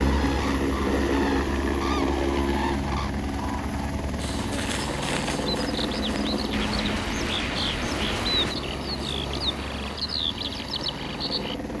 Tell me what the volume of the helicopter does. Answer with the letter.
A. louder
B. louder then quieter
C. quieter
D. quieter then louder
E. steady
C.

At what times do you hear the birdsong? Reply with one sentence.
The birdsong can be heard from 0.0 to 11.6 s.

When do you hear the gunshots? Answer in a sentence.
The gunshots can be heard from 6.5 to 8.6 s.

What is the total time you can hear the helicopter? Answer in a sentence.
You can hear the helicopter for 12 seconds altogether.